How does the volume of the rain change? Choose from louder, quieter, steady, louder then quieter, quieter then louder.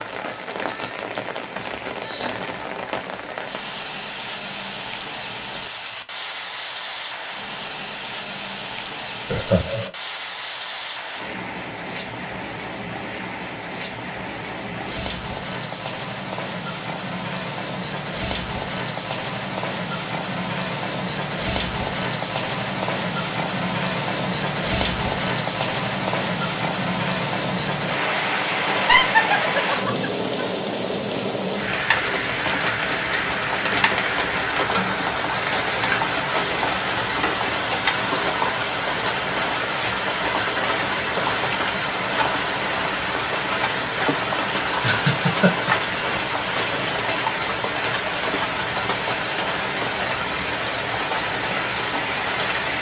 louder.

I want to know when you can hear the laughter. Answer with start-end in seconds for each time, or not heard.
9.3-9.9, 28.6-30.1, 44.8-46.2.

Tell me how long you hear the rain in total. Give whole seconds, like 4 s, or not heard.
53 s.